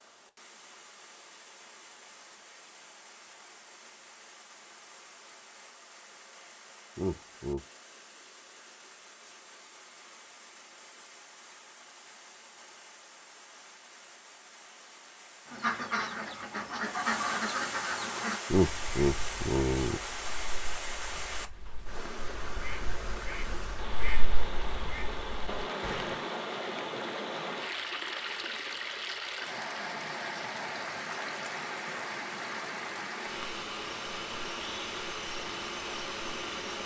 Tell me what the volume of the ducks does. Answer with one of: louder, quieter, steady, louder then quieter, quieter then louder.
quieter then louder.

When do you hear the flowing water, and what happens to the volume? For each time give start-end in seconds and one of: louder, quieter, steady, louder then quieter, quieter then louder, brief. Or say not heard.
0.0-36.8 louder.